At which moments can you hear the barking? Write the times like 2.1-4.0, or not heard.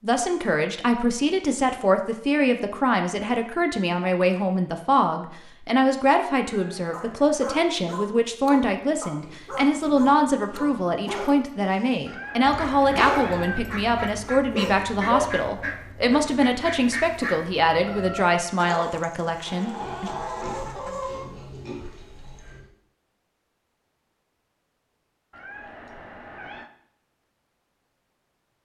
6.9-12.0, 12.9-13.7, 14.5-16.4.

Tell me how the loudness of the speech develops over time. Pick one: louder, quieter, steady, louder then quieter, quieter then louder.
steady.